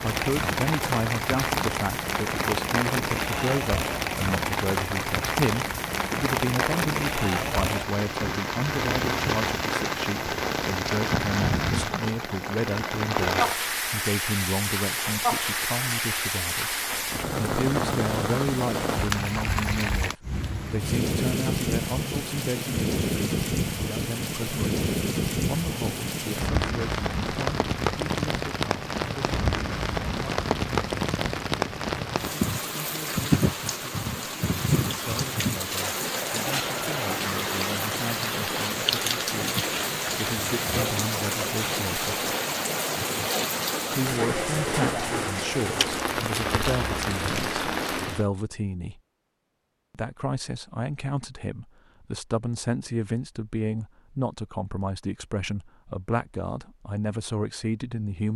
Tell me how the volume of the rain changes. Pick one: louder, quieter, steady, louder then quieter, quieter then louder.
steady.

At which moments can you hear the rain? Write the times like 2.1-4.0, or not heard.
0.0-48.2.